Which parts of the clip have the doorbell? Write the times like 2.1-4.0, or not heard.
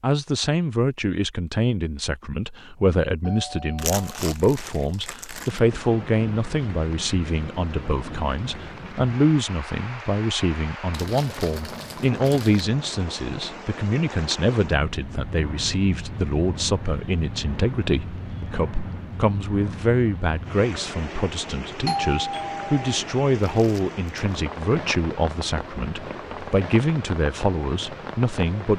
3.2-4.2, 21.9-23.0.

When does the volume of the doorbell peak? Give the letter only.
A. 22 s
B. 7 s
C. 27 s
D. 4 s
A.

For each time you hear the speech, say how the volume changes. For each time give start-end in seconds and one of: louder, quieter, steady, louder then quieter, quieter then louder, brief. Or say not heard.
0.0-28.7 steady.